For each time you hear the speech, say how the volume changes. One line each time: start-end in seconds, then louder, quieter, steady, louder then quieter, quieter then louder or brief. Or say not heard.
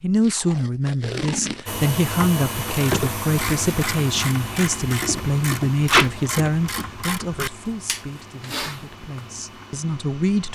0.0-10.5 quieter.